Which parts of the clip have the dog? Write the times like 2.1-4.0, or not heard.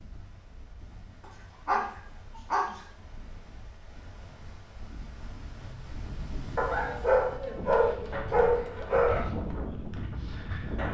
1.2-2.8, 6.5-9.2.